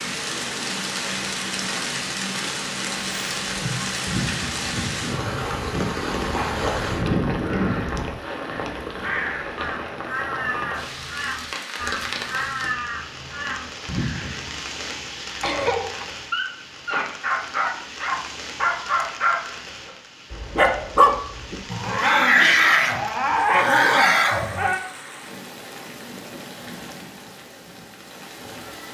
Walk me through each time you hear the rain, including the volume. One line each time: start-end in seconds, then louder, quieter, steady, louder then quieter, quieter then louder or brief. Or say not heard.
0.0-28.8 quieter.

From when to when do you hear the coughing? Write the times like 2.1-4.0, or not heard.
15.4-16.1.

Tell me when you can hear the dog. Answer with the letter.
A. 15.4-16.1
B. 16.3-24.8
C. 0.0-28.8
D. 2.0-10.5
B.